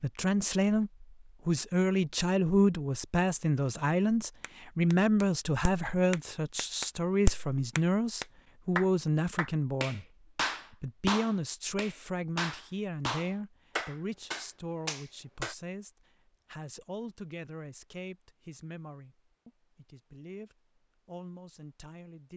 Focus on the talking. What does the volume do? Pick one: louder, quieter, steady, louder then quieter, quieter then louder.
quieter.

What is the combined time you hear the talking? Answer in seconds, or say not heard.
22 s.